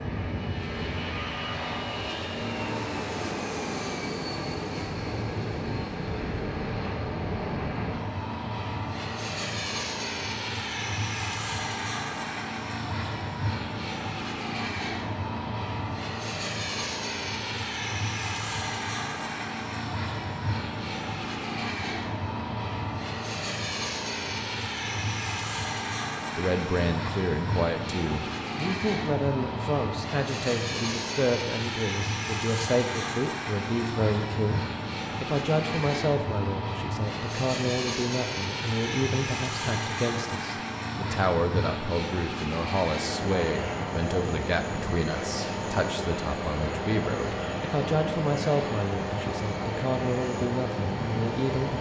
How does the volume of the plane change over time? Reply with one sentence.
The loudness of the plane stays about the same.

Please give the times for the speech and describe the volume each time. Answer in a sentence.
You can hear the speech from 26.4 to 51.7 s, at a steady volume.